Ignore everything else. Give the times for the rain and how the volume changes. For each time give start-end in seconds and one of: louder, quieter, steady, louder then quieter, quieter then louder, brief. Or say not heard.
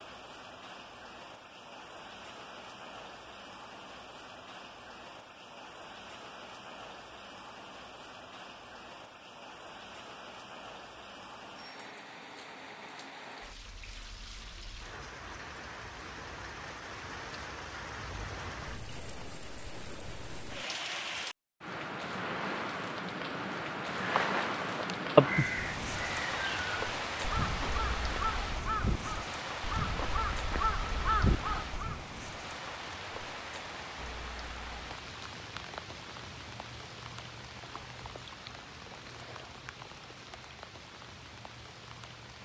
0.0-42.3 louder then quieter.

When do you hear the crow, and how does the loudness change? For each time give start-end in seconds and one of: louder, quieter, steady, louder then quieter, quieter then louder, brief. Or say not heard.
23.9-32.0 quieter then louder.